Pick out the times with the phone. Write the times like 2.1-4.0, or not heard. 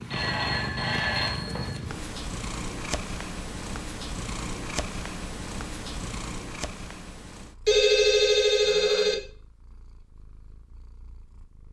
0.1-1.8, 7.7-9.2.